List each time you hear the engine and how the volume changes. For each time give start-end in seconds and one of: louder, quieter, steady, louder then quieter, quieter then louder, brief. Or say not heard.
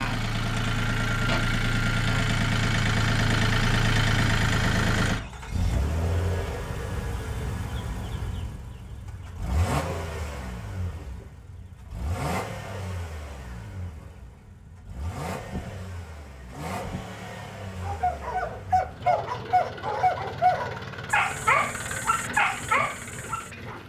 0.0-23.8 quieter.